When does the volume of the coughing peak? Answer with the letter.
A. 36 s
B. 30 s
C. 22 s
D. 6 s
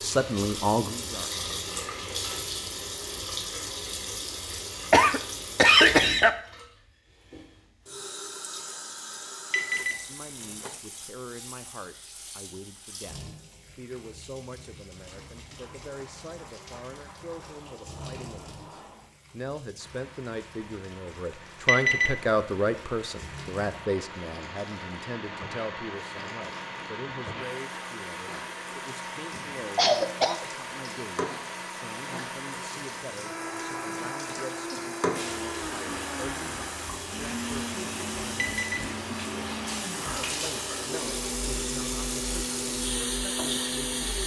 D.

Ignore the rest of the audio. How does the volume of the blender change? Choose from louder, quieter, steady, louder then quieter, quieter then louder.
louder.